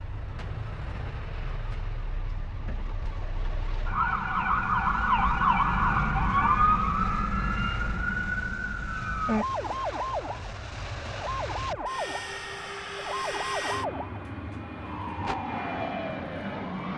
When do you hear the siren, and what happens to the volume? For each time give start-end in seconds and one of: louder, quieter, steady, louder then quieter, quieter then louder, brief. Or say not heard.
0.0-16.9 louder then quieter.